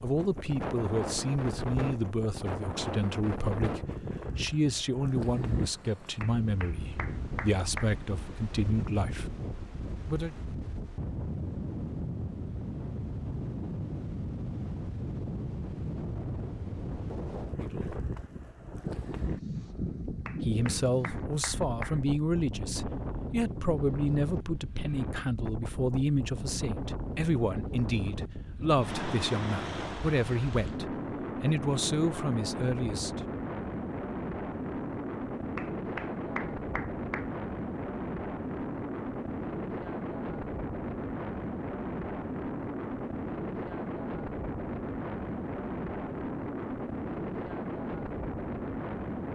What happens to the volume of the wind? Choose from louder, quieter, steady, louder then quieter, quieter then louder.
steady.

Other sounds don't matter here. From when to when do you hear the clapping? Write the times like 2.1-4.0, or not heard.
6.2-8.0, 20.2-22.0, 35.5-37.2.